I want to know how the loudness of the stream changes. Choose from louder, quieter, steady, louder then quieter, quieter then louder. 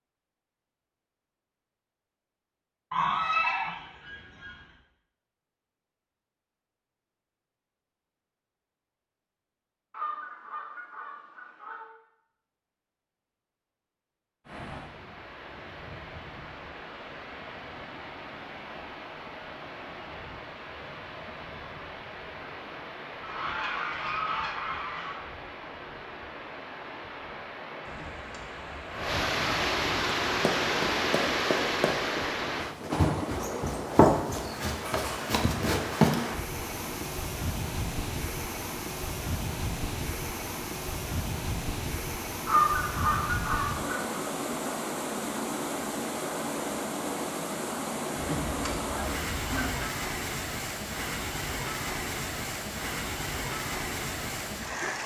louder.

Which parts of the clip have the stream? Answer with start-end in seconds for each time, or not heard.
14.4-55.0.